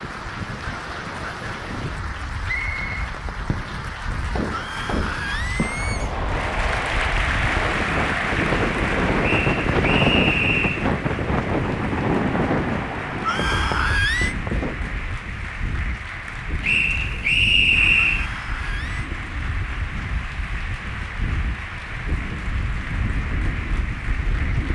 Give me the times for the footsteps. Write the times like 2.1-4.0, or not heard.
not heard.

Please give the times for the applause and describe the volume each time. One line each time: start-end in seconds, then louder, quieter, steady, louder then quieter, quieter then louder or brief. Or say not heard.
0.0-24.7 louder then quieter.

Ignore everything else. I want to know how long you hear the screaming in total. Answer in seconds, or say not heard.
4 s.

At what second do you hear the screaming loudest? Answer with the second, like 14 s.
14 s.